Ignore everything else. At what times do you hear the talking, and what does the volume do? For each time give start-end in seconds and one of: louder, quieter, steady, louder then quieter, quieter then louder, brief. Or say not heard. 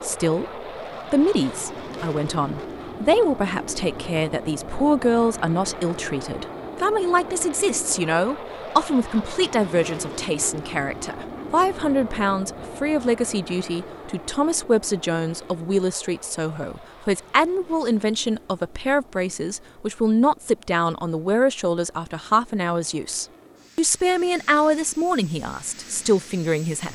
0.0-0.5 brief
1.1-26.8 steady.